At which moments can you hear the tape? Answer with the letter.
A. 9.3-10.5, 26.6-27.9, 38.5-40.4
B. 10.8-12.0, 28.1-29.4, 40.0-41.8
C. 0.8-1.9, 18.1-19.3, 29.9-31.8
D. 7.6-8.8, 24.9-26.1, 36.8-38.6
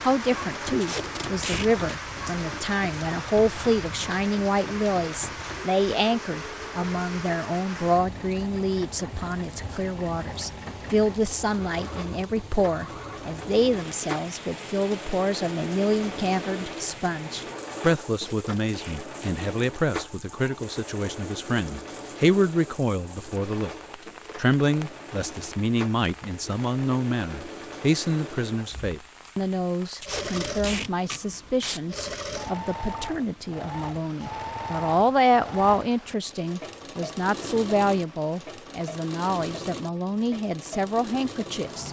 C.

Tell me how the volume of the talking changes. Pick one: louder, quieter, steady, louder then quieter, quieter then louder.
steady.